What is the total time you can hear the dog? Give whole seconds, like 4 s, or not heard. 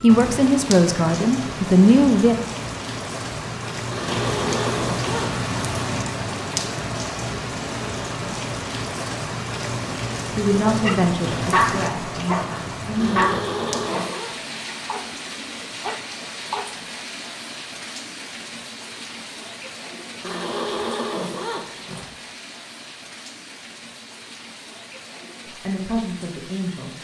5 s.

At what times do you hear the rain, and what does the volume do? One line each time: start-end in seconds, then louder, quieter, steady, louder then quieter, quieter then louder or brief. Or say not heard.
0.0-26.9 quieter.